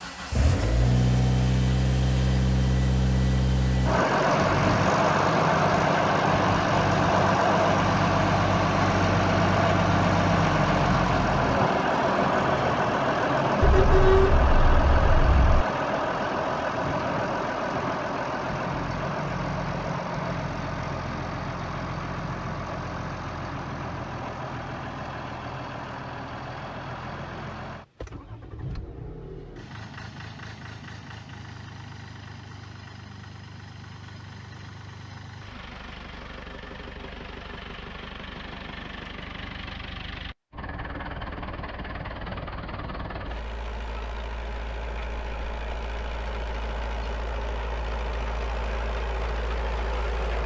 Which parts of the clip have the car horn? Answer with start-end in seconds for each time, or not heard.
13.6-15.7.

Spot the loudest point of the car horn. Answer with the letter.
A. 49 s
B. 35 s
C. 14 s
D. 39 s
C.